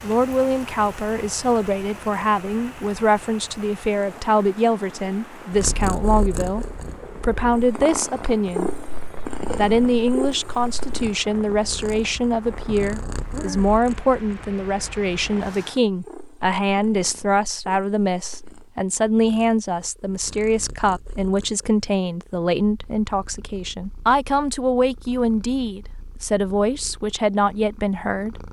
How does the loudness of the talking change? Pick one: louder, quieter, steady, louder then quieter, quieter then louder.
steady.